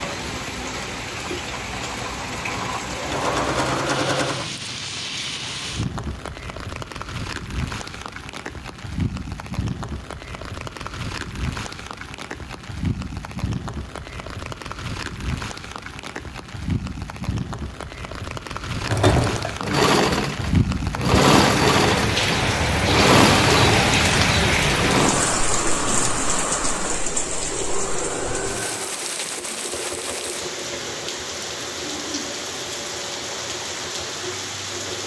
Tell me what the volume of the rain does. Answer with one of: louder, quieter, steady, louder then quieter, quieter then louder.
louder then quieter.